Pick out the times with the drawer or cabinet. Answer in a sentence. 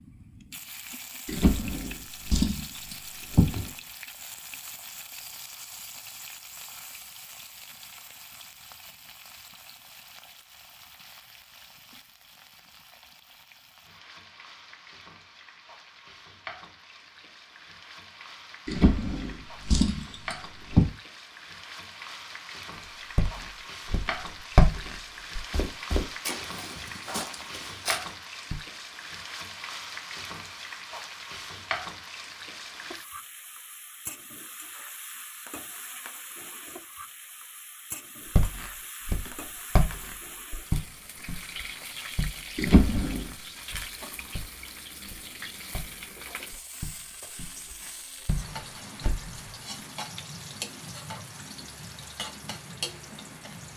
You can hear the drawer or cabinet from 1.2 to 3.6 s, from 18.6 to 20.9 s and from 42.5 to 43.4 s.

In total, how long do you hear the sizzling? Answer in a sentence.
You can hear the sizzling for 54 seconds altogether.